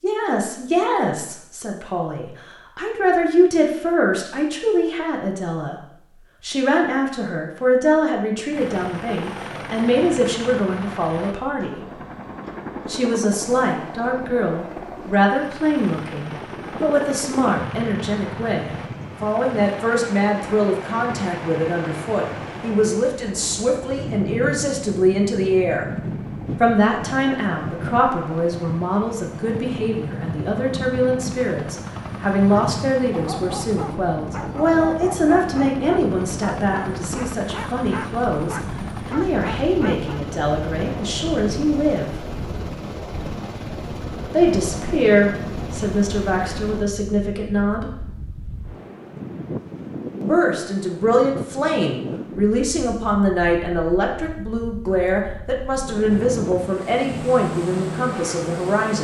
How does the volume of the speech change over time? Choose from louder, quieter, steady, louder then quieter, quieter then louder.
steady.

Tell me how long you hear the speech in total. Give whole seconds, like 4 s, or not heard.
52 s.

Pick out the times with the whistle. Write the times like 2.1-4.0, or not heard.
not heard.